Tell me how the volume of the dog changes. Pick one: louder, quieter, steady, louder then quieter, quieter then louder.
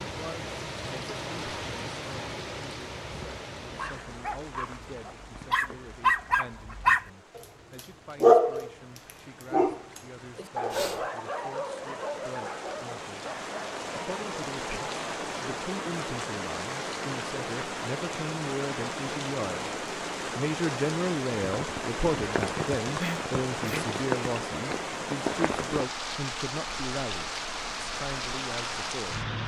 louder then quieter.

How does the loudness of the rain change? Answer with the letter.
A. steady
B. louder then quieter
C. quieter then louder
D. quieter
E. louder
C.